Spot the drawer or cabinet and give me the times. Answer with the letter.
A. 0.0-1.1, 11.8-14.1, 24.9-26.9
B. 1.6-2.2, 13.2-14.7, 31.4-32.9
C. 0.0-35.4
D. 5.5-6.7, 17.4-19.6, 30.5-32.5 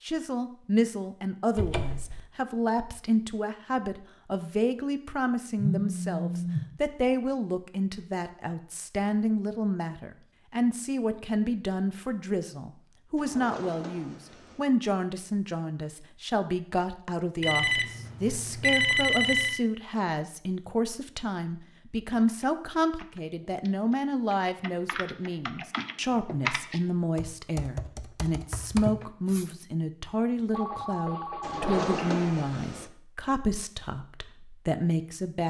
B.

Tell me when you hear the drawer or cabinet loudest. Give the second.
32 s.